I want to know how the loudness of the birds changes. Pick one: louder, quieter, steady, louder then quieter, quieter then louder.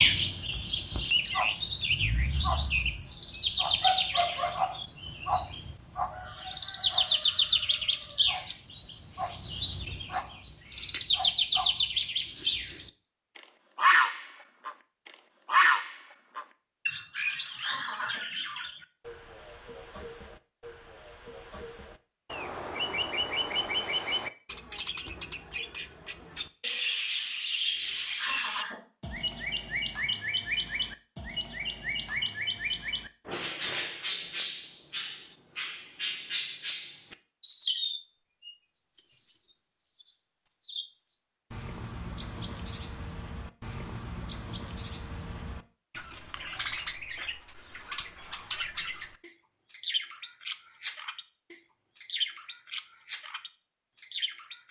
quieter.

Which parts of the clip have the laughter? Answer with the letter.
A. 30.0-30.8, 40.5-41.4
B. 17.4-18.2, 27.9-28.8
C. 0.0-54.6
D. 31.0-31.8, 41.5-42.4
B.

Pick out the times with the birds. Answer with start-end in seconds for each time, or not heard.
0.0-54.6.